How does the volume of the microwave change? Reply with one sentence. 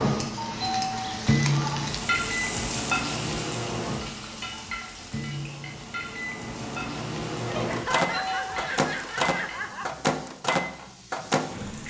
The loudness of the microwave goes down, then up.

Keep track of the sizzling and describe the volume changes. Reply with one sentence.
The loudness of the sizzling goes down.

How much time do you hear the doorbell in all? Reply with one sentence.
You can hear the doorbell for 2 seconds altogether.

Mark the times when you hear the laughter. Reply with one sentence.
You can hear the laughter from 7.5 to 9.8 s.